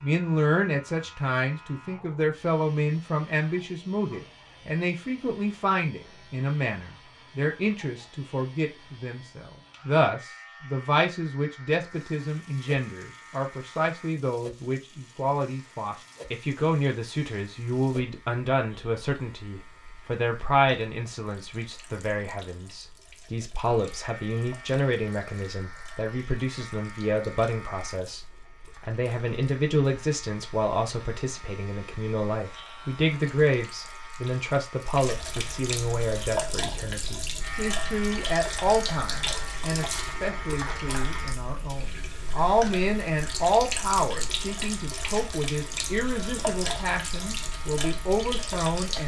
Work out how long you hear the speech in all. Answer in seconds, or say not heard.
49 s.